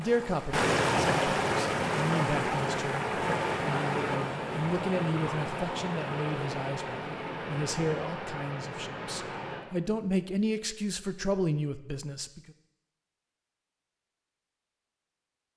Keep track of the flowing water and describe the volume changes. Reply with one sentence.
The loudness of the flowing water goes down.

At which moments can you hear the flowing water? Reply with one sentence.
The flowing water can be heard from 0.0 to 9.7 s.